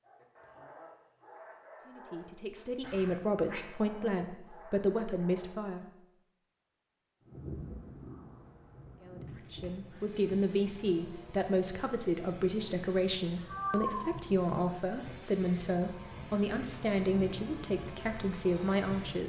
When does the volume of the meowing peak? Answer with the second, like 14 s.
14 s.